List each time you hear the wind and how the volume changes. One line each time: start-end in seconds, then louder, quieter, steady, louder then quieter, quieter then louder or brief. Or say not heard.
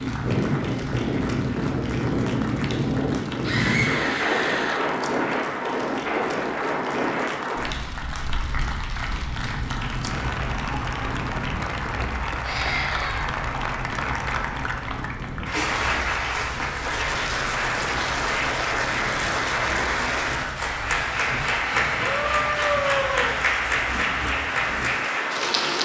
0.0-25.8 quieter.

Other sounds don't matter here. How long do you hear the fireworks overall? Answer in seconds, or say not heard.
not heard.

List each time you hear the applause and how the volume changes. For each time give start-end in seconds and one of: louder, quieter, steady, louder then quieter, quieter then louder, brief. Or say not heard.
0.0-25.8 louder.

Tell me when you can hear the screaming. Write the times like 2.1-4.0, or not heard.
3.4-4.9, 12.4-13.3, 22.0-23.4.